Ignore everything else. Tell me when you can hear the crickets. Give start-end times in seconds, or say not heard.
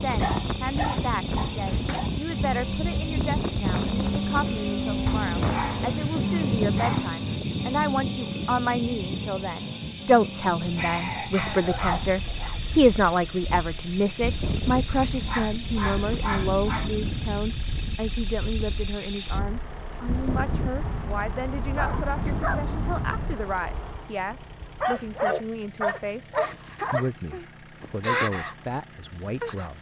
0.0-29.7.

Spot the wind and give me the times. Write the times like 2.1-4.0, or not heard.
0.0-23.4.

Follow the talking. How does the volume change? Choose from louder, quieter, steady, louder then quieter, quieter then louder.
louder then quieter.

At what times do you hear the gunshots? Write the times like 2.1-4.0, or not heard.
not heard.